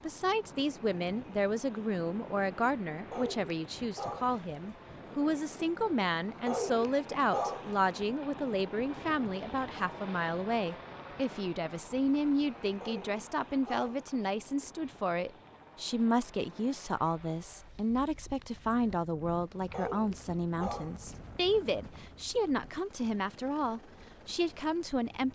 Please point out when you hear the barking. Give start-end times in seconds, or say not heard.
3.1-4.8, 6.5-7.7, 12.8-14.1, 19.7-20.9.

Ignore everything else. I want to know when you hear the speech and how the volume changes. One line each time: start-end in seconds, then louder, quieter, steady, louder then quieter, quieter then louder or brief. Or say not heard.
0.0-25.3 steady.